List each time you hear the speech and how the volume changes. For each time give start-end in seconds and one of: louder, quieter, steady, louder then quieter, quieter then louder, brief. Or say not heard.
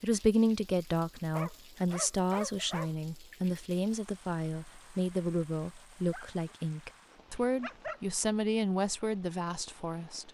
0.0-10.2 steady.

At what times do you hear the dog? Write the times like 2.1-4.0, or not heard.
1.3-3.4, 6.1-8.0.